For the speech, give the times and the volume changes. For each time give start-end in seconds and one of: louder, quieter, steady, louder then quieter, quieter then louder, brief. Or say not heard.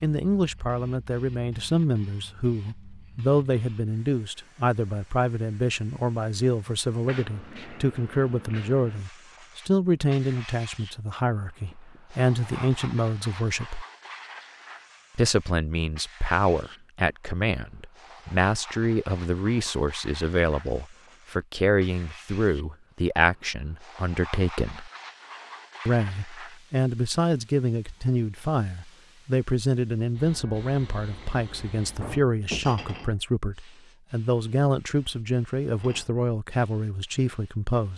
0.0-13.8 steady
15.2-24.9 steady
25.9-37.9 steady.